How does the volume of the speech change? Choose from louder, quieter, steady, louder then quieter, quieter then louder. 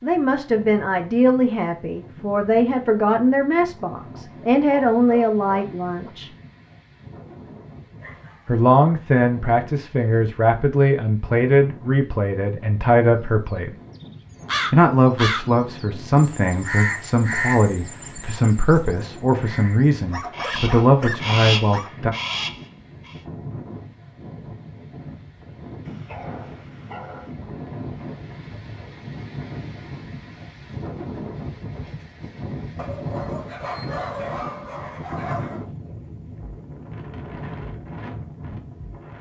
steady.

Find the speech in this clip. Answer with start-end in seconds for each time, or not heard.
0.0-6.3, 8.4-13.8, 14.7-22.1.